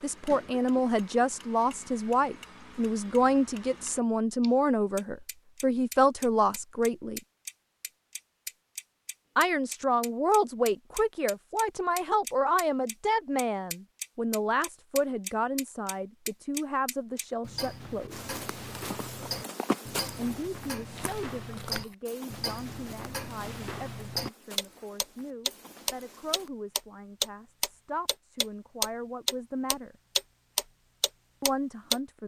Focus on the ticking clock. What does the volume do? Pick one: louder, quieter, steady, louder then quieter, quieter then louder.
louder.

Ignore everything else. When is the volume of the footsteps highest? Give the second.
20 s.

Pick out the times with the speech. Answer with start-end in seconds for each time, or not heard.
0.0-7.2, 9.3-18.3, 20.1-29.9, 31.4-32.2.